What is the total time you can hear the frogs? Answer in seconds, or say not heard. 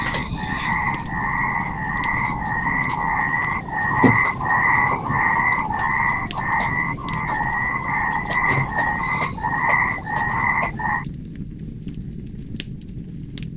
11 s.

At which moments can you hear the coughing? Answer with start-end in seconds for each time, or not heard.
not heard.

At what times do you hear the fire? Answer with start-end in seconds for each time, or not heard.
0.0-13.5.